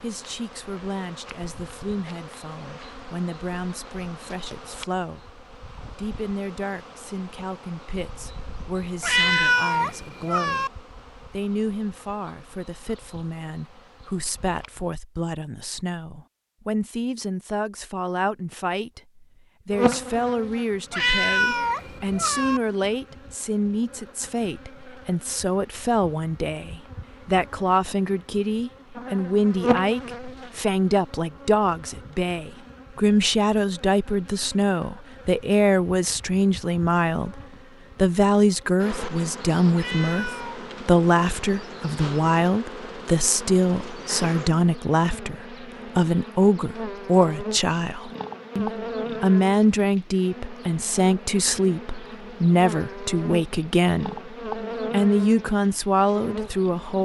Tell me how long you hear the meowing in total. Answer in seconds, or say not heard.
4 s.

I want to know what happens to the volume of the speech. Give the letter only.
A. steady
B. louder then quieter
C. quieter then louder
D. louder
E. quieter
D.